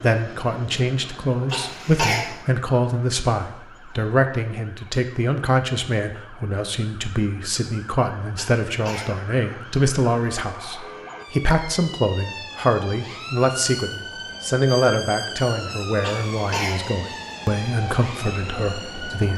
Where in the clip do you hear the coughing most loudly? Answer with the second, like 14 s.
2 s.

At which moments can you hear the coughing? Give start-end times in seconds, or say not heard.
1.5-2.3, 8.3-9.2, 16.0-16.8.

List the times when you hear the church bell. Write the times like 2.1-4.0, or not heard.
not heard.